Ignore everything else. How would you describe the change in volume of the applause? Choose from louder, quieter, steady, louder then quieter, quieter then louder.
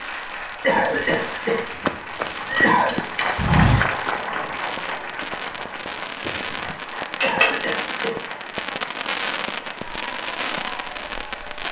louder then quieter.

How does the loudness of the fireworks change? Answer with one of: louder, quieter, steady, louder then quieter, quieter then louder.
louder.